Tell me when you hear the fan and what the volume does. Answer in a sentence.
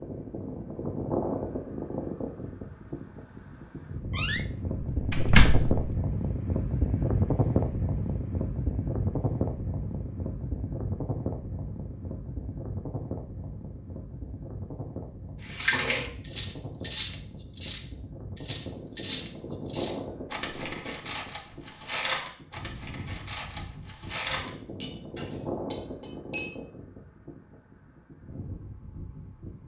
The fan can be heard from 0.0 to 29.6 s, getting quieter.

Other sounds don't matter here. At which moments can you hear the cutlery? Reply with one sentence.
The cutlery can be heard from 15.5 to 26.5 s.